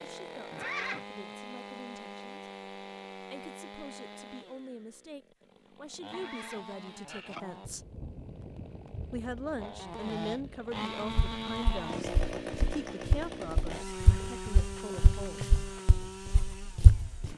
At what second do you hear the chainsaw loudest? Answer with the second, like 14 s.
12 s.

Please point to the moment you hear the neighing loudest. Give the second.
1 s.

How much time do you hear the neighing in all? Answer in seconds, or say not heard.
4 s.